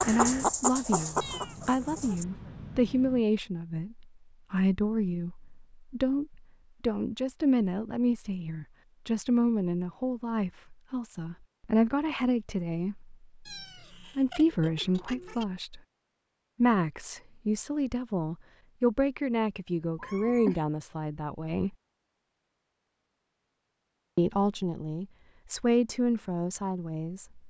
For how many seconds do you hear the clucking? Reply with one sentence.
You can hear the clucking for 2 seconds altogether.